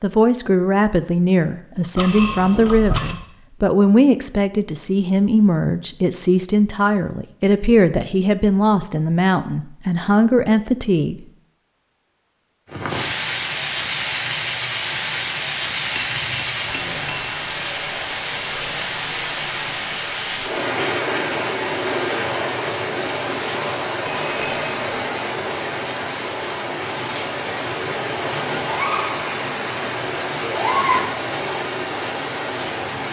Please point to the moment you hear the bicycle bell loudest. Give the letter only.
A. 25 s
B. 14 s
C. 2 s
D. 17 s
C.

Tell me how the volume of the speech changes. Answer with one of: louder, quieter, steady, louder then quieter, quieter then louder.
steady.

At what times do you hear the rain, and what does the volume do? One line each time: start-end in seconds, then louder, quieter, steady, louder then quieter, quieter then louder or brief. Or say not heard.
12.7-33.0 steady.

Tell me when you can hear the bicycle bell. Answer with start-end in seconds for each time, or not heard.
1.9-3.1, 15.9-17.3, 24.2-24.9.